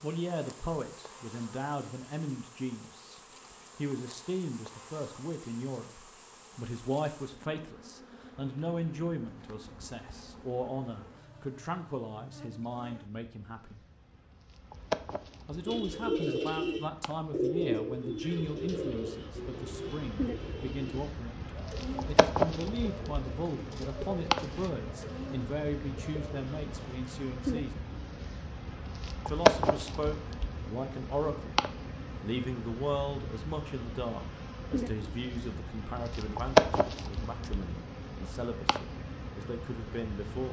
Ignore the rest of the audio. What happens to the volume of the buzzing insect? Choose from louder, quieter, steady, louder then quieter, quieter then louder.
louder.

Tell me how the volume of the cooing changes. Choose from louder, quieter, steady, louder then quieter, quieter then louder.
quieter.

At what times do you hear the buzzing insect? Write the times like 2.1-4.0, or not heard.
0.0-40.4.